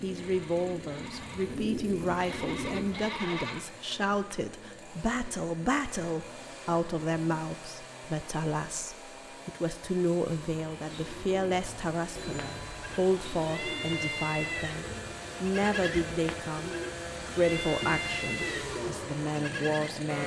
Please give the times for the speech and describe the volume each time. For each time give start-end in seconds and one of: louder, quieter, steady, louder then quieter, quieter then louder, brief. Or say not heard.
0.0-20.2 steady.